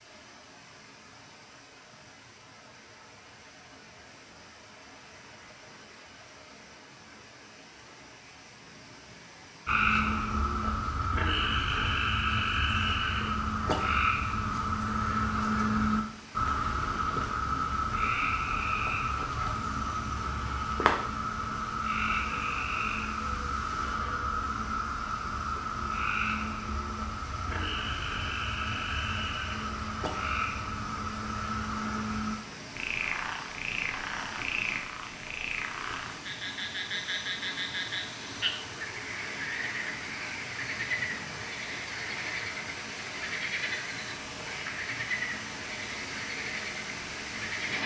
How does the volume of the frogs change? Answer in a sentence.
The volume of the frogs goes down.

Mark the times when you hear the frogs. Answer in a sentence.
You can hear the frogs from 9.7 to 47.8 s.